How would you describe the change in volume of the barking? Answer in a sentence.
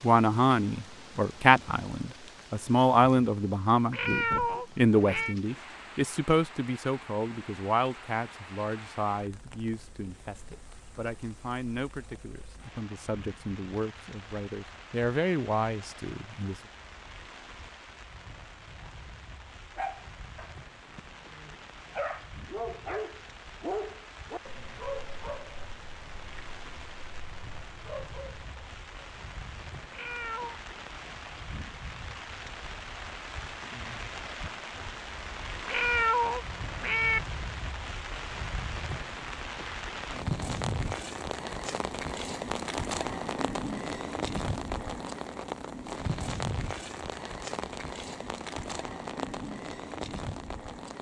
The loudness of the barking goes up, then down.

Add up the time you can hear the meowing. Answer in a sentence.
The meowing can be heard for 4 seconds in total.